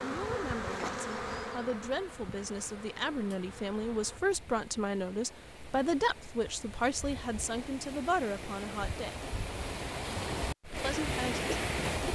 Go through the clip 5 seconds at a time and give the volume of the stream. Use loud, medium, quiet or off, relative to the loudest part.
quiet, medium, loud.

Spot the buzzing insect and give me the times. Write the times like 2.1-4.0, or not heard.
0.0-4.2.